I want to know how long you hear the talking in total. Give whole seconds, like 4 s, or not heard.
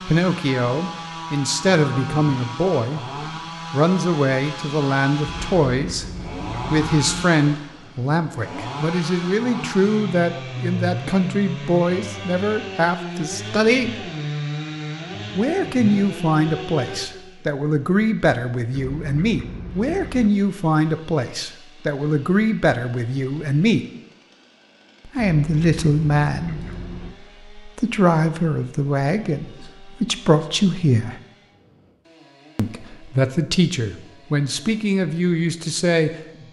31 s.